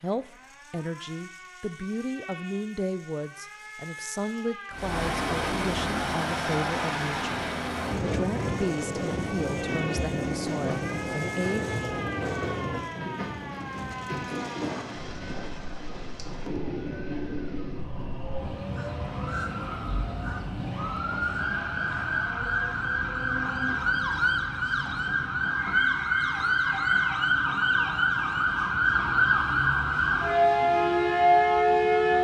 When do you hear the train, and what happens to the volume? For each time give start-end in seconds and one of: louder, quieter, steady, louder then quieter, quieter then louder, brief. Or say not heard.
4.7-32.2 quieter.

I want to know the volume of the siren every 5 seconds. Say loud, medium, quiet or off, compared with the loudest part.
quiet, quiet, quiet, quiet, medium, loud, loud.